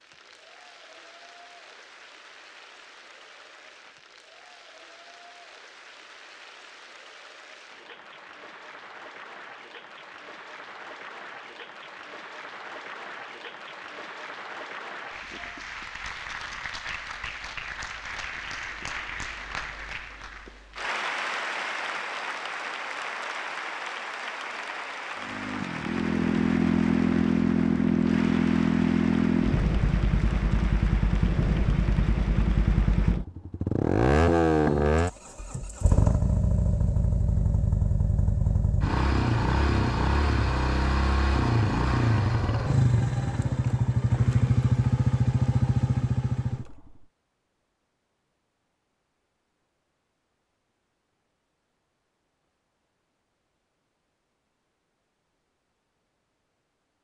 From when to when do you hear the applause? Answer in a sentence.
You can hear the applause from 0.0 to 33.2 s.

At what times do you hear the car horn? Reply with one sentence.
The car horn can't be heard in this clip.